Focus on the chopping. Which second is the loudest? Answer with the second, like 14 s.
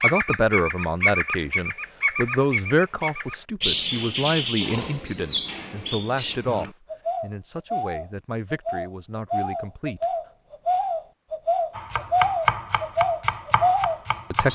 12 s.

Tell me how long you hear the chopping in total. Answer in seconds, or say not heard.
3 s.